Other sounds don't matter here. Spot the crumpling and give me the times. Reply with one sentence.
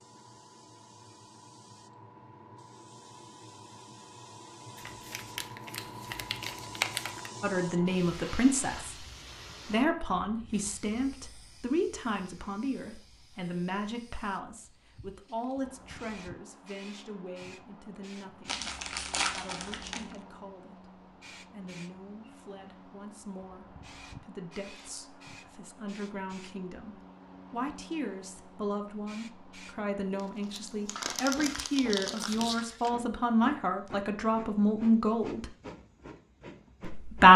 The crumpling can be heard from 4.8 to 7.3 s, from 18.4 to 20.1 s and from 30.1 to 32.9 s.